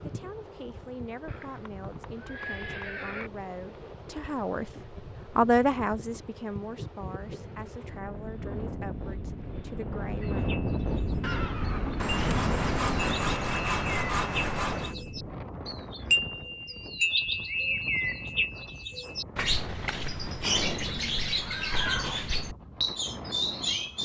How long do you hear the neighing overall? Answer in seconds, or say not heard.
6 s.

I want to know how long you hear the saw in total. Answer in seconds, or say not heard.
3 s.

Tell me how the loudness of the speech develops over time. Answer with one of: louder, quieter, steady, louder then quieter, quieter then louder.
louder then quieter.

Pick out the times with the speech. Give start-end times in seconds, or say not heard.
0.0-10.4.